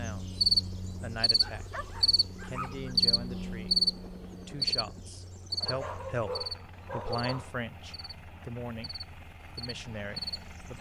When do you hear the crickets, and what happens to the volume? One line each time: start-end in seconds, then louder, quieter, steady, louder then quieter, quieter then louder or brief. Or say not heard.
0.0-10.7 quieter.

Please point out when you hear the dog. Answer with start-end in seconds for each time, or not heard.
1.4-3.0, 5.6-7.5.